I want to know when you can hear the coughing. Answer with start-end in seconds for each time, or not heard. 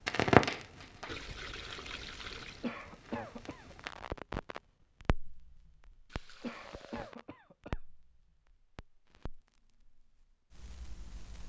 2.6-3.9, 6.4-7.8.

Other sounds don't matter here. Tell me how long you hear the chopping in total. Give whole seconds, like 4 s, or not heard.
not heard.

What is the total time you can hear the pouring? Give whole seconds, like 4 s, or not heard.
3 s.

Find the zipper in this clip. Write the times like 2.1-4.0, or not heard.
not heard.